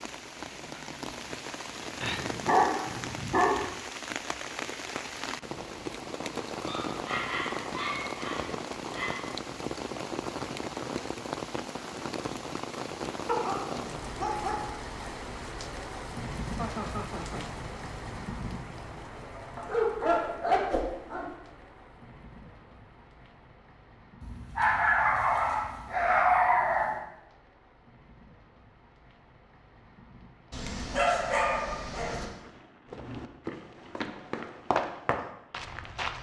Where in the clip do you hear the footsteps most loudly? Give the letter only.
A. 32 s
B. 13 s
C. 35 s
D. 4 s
C.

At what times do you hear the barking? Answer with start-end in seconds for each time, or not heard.
2.0-3.7, 6.6-9.3, 13.2-14.7, 19.6-21.3, 24.2-27.0, 30.5-32.2.